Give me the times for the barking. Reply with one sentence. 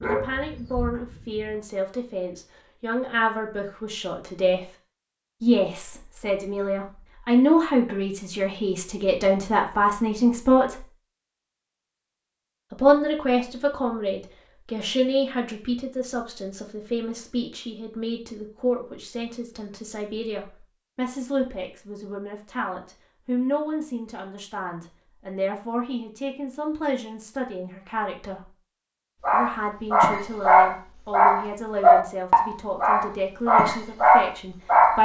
The barking can be heard from 0.0 to 1.6 s and from 29.2 to 34.9 s.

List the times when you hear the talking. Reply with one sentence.
The talking can be heard from 0.0 to 4.7 s, from 5.4 to 10.8 s, from 12.7 to 28.5 s and from 29.3 to 34.9 s.